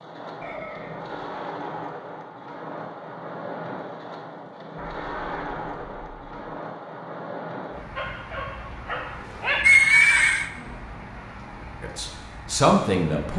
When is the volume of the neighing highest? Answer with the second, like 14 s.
10 s.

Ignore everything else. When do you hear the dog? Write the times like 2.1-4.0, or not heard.
8.0-9.7.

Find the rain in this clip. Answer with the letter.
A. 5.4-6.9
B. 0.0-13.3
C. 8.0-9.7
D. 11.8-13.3
B.